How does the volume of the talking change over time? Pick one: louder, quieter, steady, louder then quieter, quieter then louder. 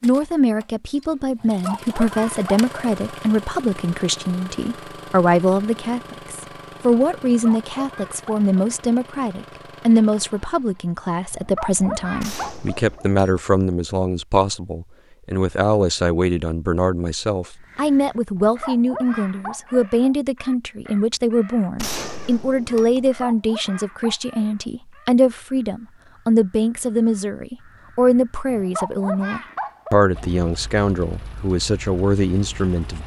steady.